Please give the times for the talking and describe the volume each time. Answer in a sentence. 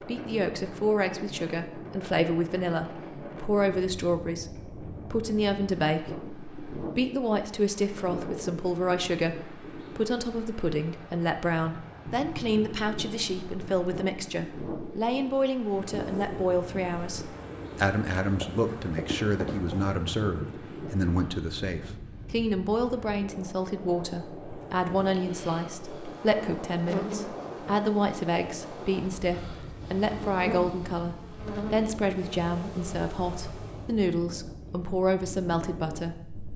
You can hear the talking from 0.0 to 36.5 s, at a steady volume.